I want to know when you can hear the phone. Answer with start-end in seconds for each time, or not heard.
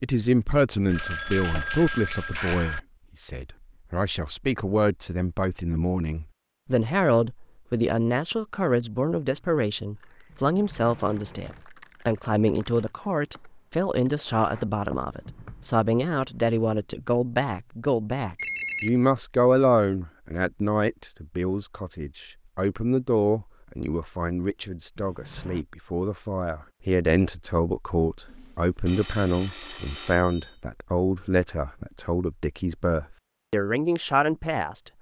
0.8-2.8, 18.4-18.9, 28.2-30.6.